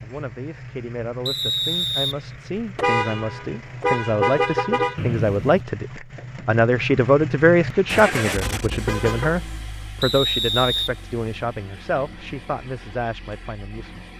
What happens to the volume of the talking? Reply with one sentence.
The loudness of the talking goes up, then down.